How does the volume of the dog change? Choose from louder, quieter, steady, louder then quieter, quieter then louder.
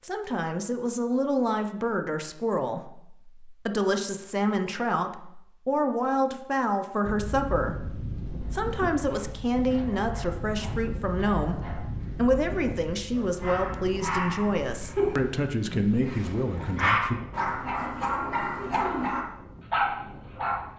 louder.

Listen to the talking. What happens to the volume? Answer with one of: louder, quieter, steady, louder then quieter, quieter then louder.
steady.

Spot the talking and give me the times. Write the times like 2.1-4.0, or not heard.
0.0-17.2.